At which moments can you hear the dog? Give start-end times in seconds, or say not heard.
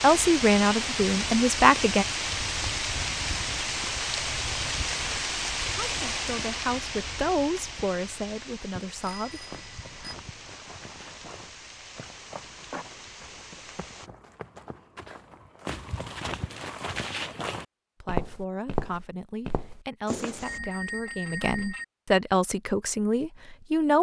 not heard.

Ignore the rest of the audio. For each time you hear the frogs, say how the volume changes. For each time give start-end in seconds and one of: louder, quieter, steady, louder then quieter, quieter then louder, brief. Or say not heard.
not heard.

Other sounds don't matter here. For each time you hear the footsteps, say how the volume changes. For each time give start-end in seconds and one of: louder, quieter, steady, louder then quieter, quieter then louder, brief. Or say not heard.
9.2-20.6 louder.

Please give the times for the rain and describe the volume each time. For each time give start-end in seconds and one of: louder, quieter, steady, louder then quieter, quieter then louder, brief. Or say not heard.
0.0-14.1 quieter.